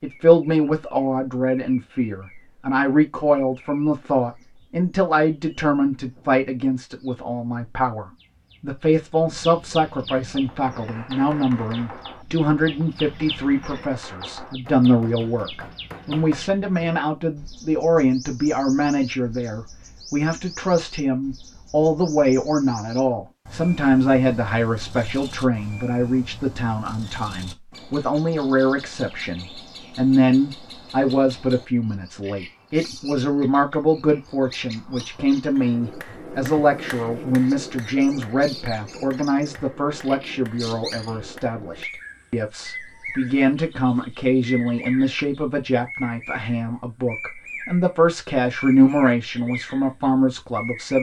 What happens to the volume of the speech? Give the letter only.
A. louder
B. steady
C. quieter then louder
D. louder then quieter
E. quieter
B.